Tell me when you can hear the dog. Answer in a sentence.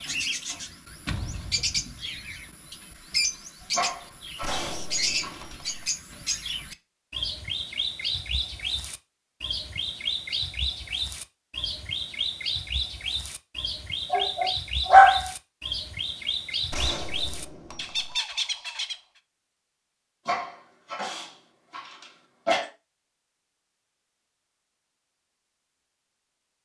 You can hear the dog from 3.7 to 5.6 s, from 14.1 to 15.2 s and from 20.2 to 22.7 s.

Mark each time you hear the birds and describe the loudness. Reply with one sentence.
You can hear the birds from 0.0 to 19.0 s, at a steady volume.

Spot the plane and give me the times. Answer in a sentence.
The plane can't be heard in this clip.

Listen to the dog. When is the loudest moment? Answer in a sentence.
The volume of the dog peaks at 15 seconds.